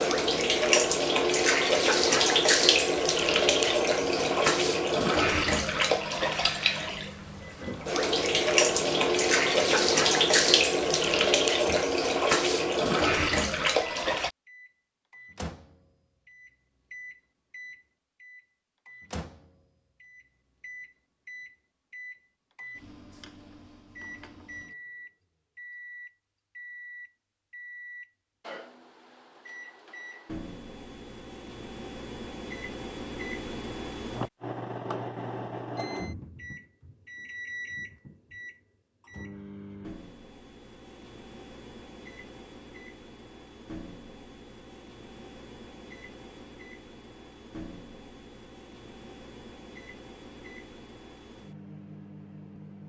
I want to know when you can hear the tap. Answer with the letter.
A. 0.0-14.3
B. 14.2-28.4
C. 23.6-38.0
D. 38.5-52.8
A.